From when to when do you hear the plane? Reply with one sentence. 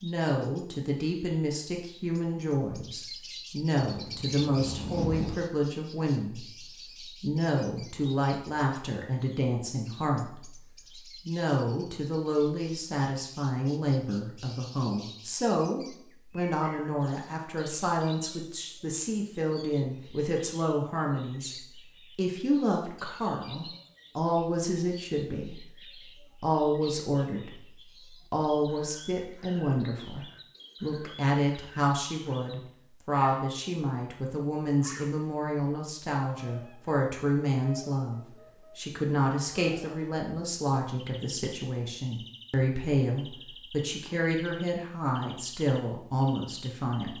You can hear the plane from 3.8 to 5.3 s.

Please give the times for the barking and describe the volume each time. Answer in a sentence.
You can't hear the barking here.